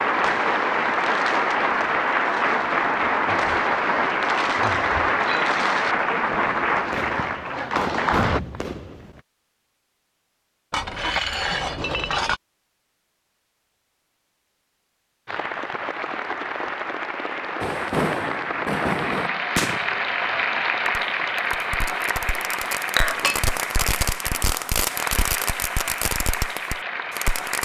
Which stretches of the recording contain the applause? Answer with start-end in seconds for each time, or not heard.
0.0-8.4, 15.2-27.6.